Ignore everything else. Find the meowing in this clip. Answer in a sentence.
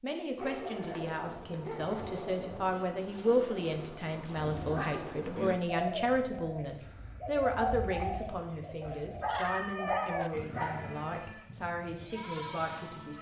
The meowing can be heard from 8.8 to 10.3 s.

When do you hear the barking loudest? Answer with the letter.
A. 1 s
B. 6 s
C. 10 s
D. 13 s
C.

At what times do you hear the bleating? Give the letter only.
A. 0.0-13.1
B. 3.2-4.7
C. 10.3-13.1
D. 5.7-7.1
C.